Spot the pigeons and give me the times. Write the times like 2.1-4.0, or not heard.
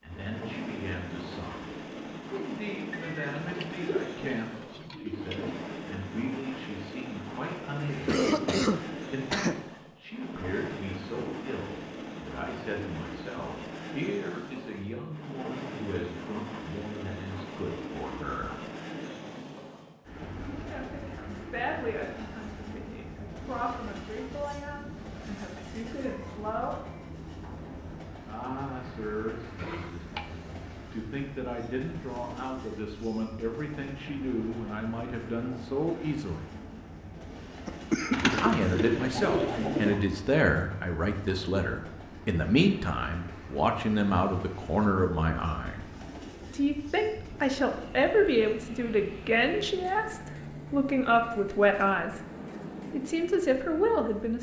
2.9-5.5, 38.1-40.0.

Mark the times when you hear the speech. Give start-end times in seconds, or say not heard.
0.0-18.6, 20.5-26.8, 28.2-36.5, 38.4-45.8, 46.5-52.2, 52.9-54.3.